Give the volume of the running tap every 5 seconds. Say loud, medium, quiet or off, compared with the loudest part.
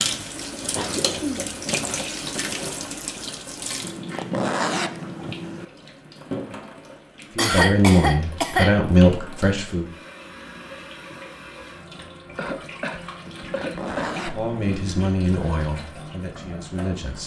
loud, medium, medium, medium.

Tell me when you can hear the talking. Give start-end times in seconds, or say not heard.
7.3-9.9, 14.2-17.2.